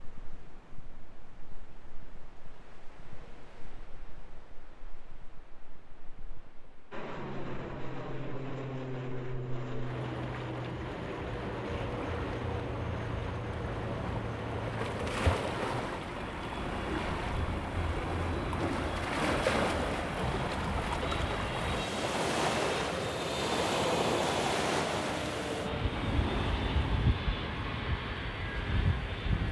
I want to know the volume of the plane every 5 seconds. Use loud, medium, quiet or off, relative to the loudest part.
off, loud, loud, medium, loud, loud.